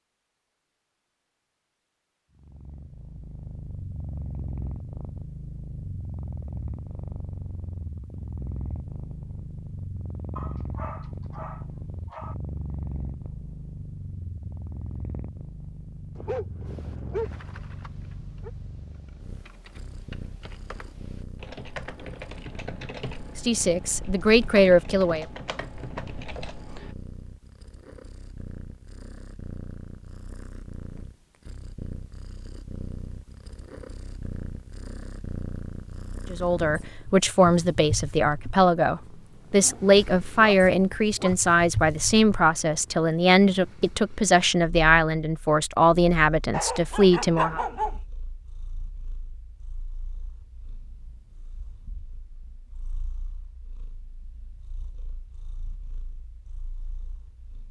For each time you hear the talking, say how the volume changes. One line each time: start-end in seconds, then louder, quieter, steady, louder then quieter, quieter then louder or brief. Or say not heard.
23.4-25.2 brief
36.3-47.6 steady.